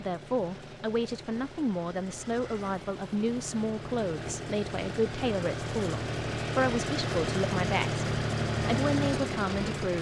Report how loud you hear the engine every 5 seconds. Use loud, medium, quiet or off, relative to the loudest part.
medium, loud.